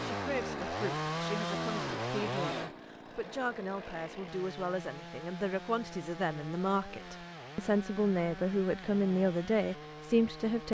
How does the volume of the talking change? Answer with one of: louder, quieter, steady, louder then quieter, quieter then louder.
louder.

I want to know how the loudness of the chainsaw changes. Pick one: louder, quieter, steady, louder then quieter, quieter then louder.
quieter.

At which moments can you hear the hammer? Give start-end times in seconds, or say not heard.
not heard.